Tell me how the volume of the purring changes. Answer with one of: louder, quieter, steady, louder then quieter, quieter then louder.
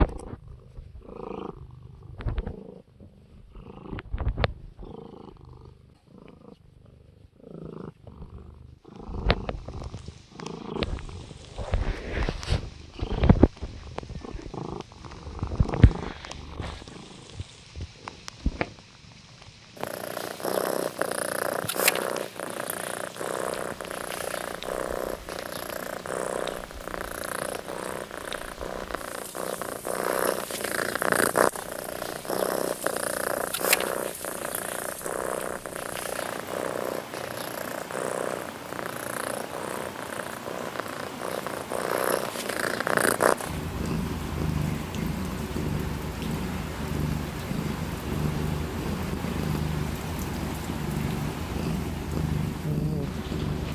louder.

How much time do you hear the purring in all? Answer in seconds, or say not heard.
54 s.